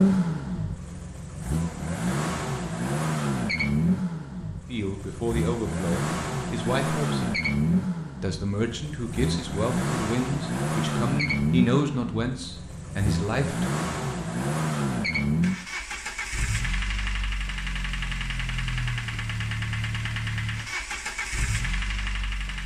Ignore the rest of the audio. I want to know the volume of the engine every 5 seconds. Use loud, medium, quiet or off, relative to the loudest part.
loud, loud, loud, loud, medium.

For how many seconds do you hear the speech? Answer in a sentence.
The speech can be heard for 8 seconds in total.